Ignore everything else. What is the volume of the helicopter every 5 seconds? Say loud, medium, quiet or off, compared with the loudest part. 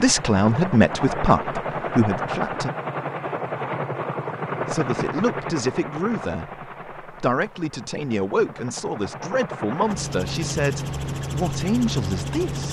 loud, medium, loud.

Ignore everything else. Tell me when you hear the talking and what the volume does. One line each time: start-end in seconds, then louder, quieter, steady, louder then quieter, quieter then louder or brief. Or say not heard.
0.0-2.7 brief
4.7-12.6 steady.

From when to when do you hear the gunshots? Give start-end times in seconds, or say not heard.
not heard.